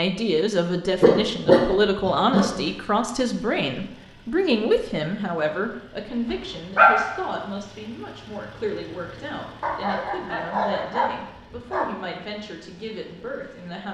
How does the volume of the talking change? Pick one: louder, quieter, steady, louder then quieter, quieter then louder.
quieter.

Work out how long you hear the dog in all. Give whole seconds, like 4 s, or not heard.
5 s.